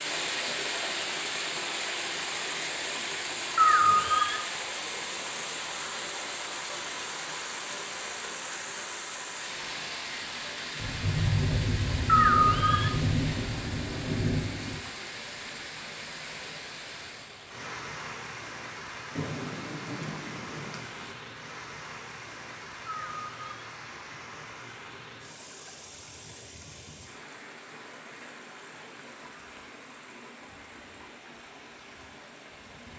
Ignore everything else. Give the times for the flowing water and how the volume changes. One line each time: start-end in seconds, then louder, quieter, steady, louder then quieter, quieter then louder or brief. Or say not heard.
0.0-32.9 quieter.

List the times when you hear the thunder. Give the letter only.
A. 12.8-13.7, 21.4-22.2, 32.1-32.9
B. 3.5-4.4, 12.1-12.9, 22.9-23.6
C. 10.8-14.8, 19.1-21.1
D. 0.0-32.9
C.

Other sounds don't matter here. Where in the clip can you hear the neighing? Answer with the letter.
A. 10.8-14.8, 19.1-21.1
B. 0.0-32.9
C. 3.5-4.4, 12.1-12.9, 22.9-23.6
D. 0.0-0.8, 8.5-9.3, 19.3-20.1
C.